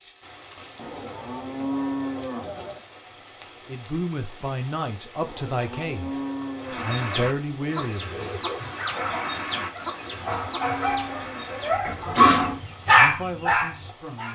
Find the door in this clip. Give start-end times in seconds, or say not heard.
not heard.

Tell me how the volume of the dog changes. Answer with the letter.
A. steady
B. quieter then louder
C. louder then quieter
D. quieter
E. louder
E.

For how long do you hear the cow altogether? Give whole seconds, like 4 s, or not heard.
6 s.